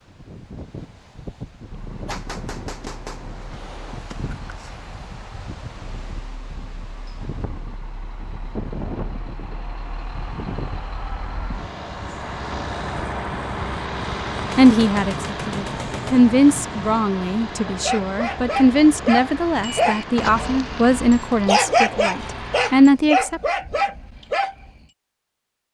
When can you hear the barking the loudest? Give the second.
22 s.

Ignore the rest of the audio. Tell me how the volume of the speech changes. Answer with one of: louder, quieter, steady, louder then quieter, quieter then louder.
quieter then louder.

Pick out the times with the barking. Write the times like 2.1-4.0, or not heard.
17.8-24.8.